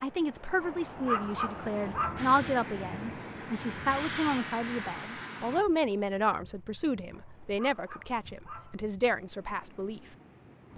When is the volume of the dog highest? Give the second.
1 s.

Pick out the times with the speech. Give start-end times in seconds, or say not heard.
0.0-10.0.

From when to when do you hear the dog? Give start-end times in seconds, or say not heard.
0.6-2.3, 7.1-8.8.